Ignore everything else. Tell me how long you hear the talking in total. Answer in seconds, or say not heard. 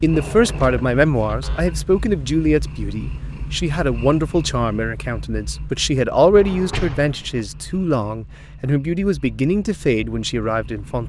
11 s.